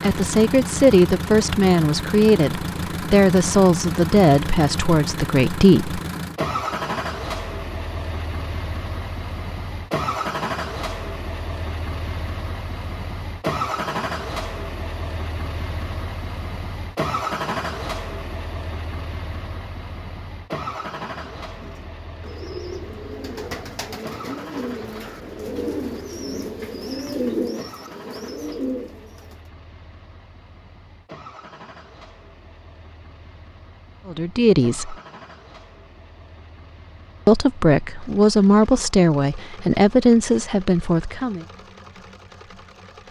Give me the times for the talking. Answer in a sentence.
You can hear the talking from 0.0 to 6.0 s, from 34.0 to 35.0 s and from 37.2 to 41.5 s.